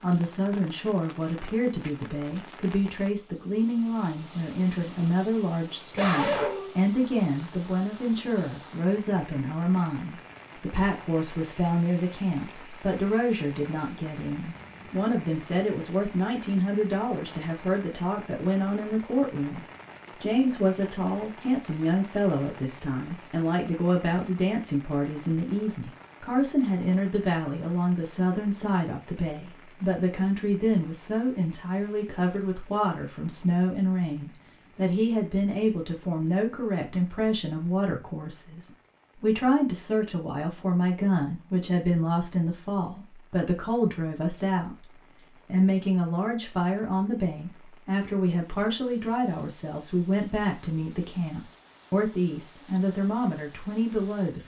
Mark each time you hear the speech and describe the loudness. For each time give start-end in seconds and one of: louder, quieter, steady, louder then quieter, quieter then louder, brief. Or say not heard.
0.0-54.4 steady.